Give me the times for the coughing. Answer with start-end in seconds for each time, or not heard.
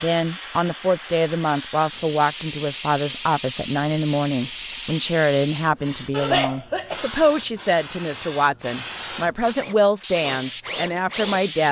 6.1-7.1.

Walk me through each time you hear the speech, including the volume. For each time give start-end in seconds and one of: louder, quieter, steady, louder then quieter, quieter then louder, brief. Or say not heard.
0.0-11.6 steady.